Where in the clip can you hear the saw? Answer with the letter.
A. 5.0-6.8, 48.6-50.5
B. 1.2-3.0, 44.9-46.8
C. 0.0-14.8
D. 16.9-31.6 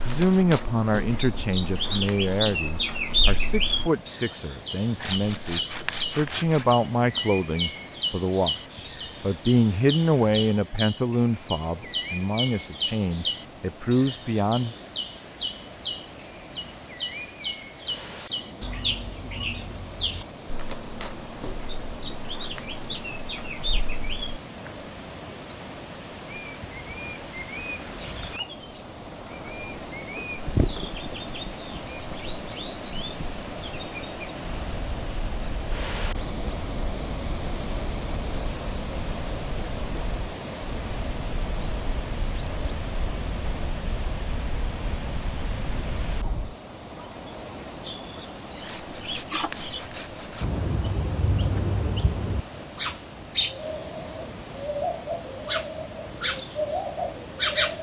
A.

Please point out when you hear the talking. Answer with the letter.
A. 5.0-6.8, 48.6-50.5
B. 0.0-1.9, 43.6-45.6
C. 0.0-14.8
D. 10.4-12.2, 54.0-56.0
C.